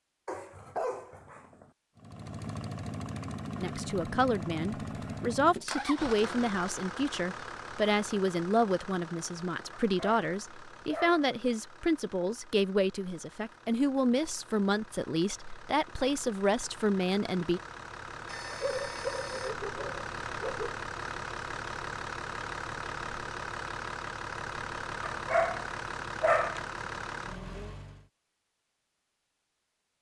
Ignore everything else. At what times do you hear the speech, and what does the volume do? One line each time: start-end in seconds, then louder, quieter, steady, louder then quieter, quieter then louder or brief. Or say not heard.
3.6-17.6 steady.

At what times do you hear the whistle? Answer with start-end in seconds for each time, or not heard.
not heard.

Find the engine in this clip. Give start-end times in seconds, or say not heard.
1.9-28.1.